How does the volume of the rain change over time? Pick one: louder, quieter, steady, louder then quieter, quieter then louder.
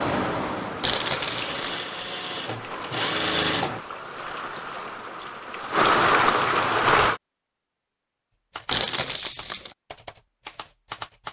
louder.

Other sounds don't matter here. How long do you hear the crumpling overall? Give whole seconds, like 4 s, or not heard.
2 s.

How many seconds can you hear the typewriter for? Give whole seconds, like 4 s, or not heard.
3 s.